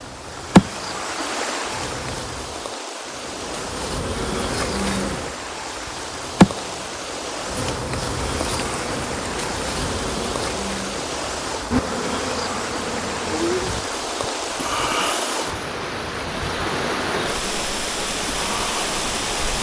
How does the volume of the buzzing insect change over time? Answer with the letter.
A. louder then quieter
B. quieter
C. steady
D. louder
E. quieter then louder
B.